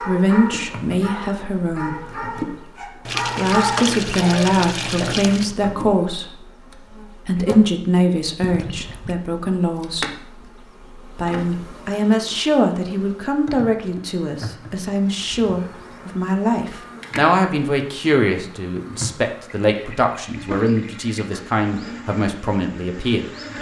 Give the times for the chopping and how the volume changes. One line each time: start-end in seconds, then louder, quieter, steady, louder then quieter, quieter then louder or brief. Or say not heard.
not heard.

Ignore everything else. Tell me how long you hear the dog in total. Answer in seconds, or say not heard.
5 s.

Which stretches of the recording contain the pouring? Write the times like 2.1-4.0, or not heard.
3.0-5.5, 8.4-9.2, 19.6-21.2.